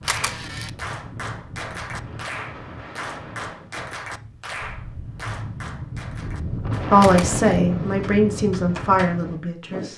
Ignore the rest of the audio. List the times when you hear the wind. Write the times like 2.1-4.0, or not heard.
0.0-9.9.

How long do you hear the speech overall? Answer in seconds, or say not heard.
3 s.